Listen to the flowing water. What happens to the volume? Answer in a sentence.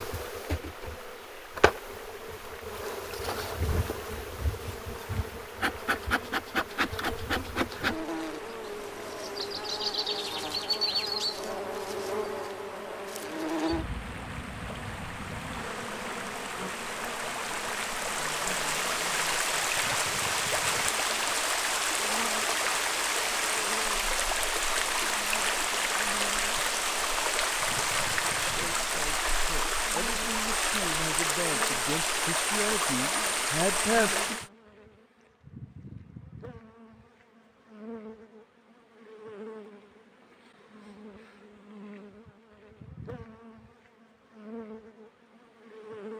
The loudness of the flowing water goes up.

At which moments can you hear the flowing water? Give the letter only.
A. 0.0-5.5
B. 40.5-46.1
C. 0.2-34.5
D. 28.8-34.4
C.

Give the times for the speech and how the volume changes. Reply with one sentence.
The speech can be heard from 28.8 to 34.4 s, getting louder.